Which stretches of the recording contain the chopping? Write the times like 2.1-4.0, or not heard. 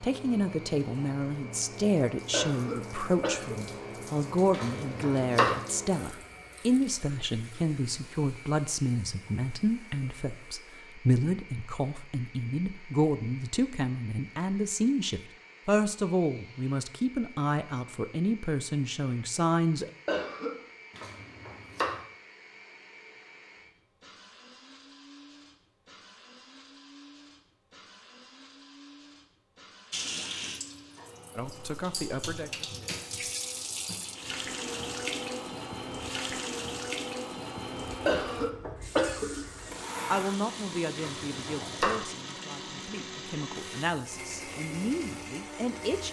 4.5-5.6, 20.9-22.0, 41.0-42.0.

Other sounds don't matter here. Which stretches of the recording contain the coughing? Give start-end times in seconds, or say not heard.
2.3-3.6, 20.1-20.6, 38.0-39.9.